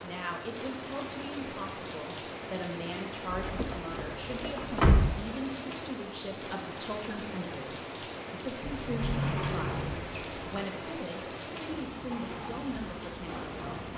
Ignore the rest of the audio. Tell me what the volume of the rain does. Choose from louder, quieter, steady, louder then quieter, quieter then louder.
steady.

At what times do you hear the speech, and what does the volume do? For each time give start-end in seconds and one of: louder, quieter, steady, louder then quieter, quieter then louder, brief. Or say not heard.
0.0-13.8 steady.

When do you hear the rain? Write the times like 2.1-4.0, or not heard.
0.0-13.9.